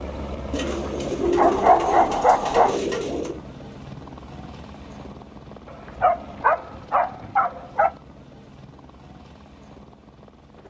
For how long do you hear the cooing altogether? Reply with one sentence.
You can hear the cooing for 3 seconds altogether.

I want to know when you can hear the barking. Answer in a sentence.
The barking can be heard from 1.4 to 2.8 s and from 5.7 to 8.0 s.